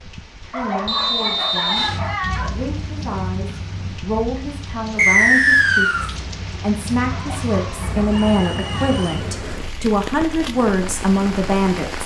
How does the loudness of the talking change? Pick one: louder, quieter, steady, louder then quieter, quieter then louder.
louder.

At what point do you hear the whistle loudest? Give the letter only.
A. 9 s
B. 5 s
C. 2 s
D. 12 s
B.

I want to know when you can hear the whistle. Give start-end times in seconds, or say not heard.
0.8-1.9, 5.0-6.1, 8.1-9.1.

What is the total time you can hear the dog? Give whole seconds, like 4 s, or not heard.
4 s.